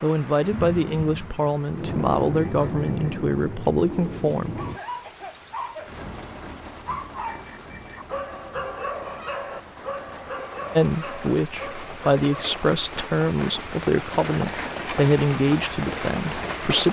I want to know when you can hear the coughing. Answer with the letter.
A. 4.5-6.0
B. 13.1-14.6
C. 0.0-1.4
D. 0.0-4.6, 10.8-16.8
A.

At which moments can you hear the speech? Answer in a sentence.
You can hear the speech from 0.0 to 4.6 s and from 10.8 to 16.8 s.